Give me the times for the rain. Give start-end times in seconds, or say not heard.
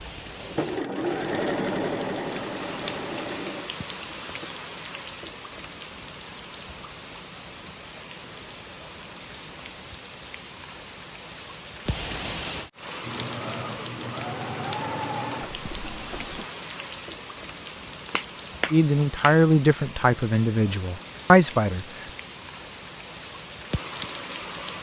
0.0-24.7.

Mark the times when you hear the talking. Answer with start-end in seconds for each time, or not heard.
18.7-22.1.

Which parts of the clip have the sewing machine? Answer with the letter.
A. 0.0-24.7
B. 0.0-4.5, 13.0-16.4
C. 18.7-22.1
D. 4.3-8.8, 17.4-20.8
B.